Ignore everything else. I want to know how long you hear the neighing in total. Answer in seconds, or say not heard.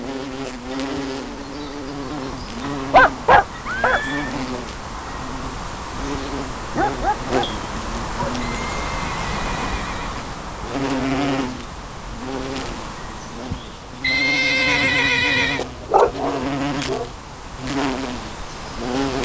4 s.